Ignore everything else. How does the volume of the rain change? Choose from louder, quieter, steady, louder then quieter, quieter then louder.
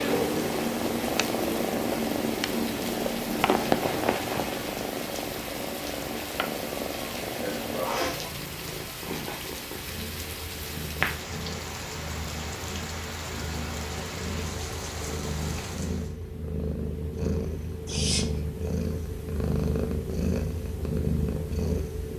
steady.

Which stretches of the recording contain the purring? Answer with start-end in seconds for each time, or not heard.
0.0-22.1.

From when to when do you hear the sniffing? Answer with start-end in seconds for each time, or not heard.
7.4-8.3, 17.9-18.4.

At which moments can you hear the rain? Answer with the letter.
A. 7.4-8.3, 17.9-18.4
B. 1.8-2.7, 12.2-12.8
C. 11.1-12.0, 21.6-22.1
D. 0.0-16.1
D.